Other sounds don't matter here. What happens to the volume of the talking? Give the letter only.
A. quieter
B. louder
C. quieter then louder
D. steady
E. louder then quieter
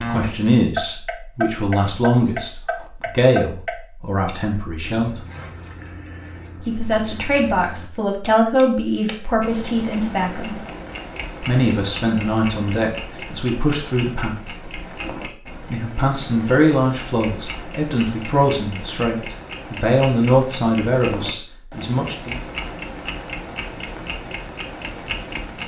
D.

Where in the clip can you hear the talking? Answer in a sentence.
You can hear the talking from 0.1 to 5.1 s, from 6.7 to 10.6 s, from 11.4 to 14.5 s and from 15.7 to 22.4 s.